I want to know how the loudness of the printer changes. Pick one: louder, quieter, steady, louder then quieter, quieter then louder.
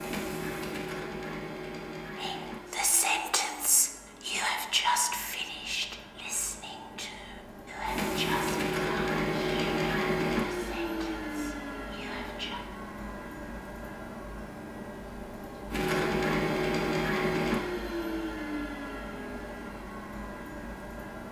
louder.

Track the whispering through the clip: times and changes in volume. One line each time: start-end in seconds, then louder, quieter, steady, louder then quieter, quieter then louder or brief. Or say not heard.
2.1-12.6 quieter.